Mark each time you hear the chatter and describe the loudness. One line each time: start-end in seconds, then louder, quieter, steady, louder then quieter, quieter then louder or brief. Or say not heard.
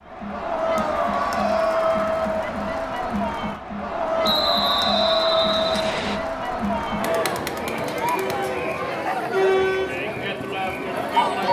0.1-11.4 steady.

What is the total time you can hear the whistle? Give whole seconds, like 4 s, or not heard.
2 s.